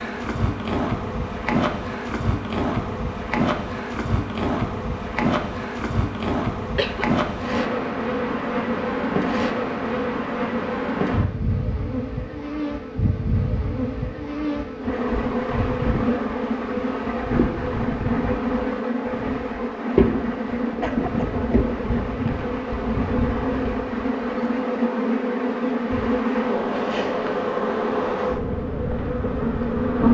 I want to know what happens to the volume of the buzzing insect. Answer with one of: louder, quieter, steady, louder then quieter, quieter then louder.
steady.